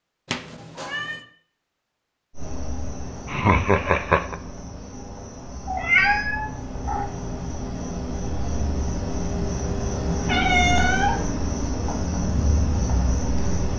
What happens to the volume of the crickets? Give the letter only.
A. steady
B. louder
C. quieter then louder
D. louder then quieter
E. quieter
B.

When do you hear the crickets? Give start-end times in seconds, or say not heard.
2.4-13.7.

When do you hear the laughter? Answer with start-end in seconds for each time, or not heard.
3.2-4.4.